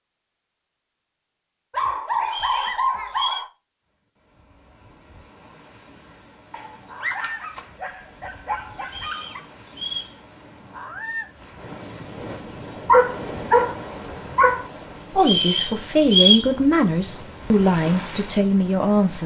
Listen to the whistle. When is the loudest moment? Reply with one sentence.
The loudest moment of the whistle is at 16 seconds.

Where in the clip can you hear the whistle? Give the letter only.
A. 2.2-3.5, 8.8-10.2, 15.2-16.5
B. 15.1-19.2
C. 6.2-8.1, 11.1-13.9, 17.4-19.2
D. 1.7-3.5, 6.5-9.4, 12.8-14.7
A.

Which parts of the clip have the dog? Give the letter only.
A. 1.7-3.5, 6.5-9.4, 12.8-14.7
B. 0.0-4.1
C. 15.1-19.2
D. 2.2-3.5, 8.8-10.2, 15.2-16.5
A.